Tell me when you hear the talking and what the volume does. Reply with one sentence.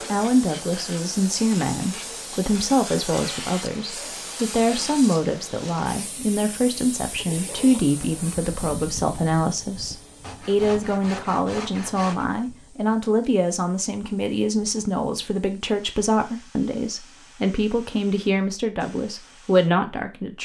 You can hear the talking from 0.1 to 20.4 s, at a steady volume.